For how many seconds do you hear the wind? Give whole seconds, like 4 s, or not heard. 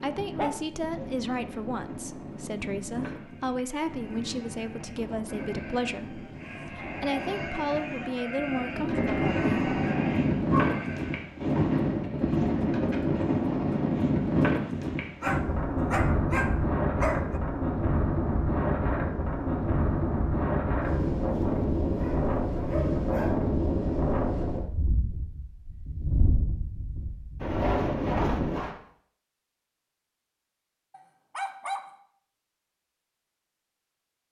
29 s.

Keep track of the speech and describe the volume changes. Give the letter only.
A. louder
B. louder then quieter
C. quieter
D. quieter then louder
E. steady
E.